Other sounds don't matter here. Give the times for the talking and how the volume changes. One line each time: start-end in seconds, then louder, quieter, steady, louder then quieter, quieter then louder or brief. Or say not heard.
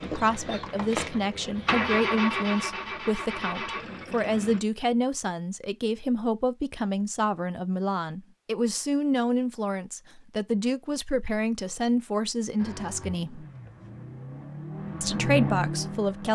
0.0-13.4 steady
15.0-16.2 brief.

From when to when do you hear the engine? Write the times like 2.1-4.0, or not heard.
0.0-4.6, 12.6-16.2.